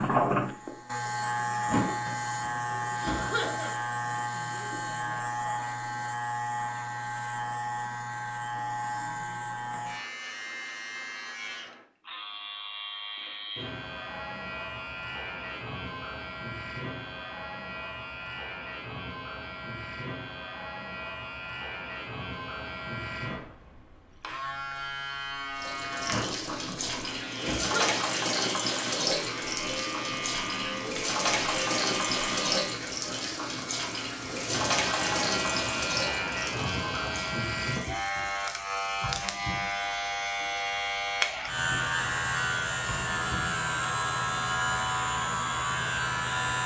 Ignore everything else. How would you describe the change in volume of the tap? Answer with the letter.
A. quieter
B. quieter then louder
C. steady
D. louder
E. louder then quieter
A.